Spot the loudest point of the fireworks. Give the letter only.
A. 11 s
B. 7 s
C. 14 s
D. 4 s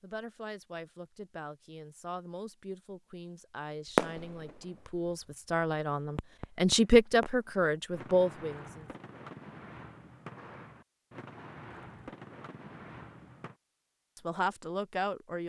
D.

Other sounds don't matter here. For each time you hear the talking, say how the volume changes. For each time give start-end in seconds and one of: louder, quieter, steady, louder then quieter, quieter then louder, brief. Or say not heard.
0.0-8.8 louder
14.2-15.4 brief.